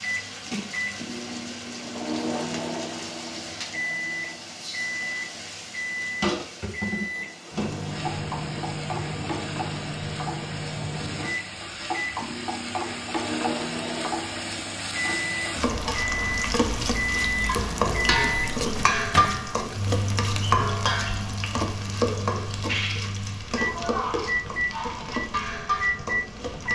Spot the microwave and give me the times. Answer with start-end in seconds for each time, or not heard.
0.0-26.6.